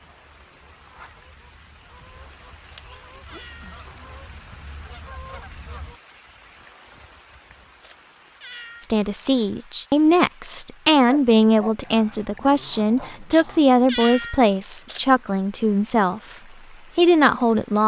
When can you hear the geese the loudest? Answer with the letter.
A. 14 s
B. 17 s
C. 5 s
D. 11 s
C.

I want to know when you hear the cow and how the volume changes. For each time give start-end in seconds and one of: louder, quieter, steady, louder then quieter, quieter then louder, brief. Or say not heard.
not heard.